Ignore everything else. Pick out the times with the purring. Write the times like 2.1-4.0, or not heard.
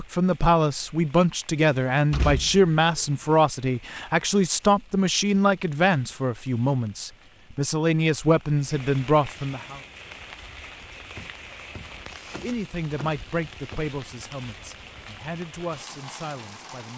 not heard.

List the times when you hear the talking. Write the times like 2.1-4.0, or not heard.
0.0-9.8, 12.4-16.9.